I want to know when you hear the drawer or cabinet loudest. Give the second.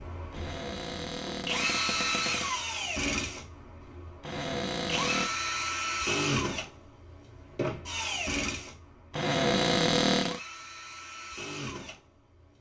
10 s.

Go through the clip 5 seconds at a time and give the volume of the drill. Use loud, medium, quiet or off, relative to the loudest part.
loud, loud, medium.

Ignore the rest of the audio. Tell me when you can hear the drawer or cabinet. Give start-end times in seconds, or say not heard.
0.3-2.5, 4.2-5.3, 9.1-10.4.